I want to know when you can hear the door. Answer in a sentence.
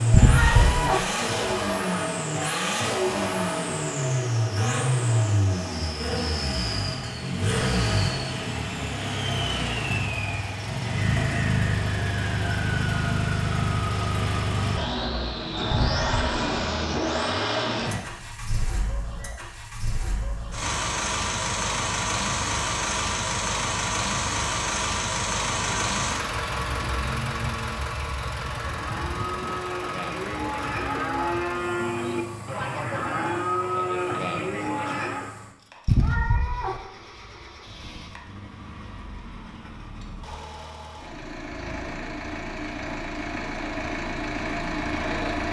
The door can't be heard in this clip.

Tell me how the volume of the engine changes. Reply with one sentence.
The loudness of the engine goes down.